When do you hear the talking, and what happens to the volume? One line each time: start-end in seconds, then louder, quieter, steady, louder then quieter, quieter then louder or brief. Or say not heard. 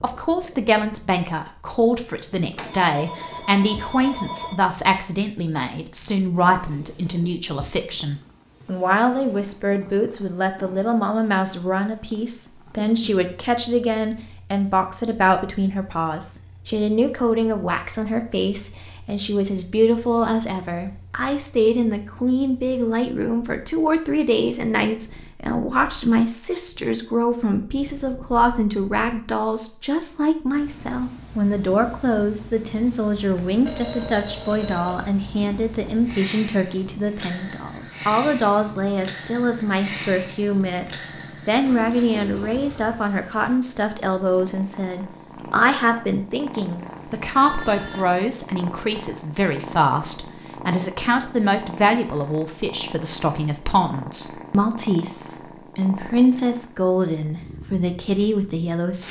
0.0-59.0 steady.